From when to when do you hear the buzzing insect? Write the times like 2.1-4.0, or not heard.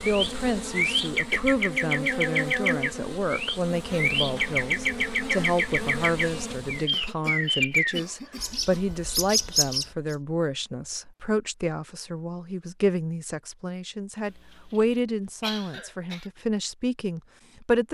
0.0-6.9.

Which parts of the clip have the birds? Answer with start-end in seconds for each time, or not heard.
0.0-10.2.